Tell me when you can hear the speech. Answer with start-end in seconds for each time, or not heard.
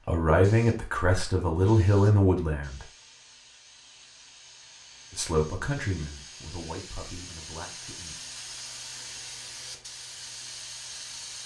0.1-2.9, 5.1-8.2.